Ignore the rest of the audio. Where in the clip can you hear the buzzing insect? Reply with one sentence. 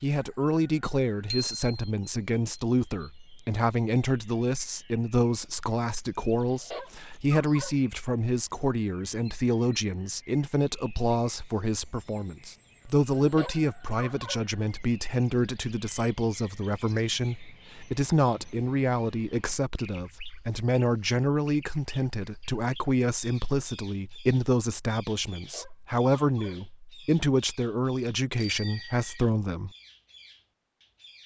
You can't hear the buzzing insect here.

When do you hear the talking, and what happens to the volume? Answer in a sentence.
You can hear the talking from 0.0 to 29.7 s, at a steady volume.